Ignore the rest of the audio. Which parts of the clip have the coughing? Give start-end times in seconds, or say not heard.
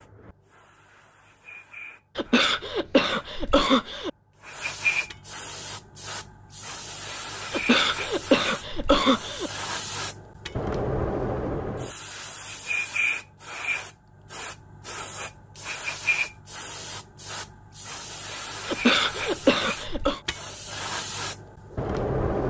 2.1-4.1, 7.5-9.5, 18.6-20.2.